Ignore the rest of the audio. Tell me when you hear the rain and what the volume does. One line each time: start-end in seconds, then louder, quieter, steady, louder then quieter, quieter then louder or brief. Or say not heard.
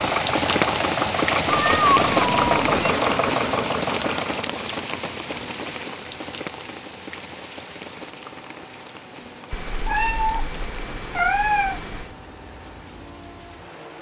0.0-13.9 quieter.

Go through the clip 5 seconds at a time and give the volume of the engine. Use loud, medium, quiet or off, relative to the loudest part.
loud, quiet, quiet.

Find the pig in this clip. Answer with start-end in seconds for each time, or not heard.
not heard.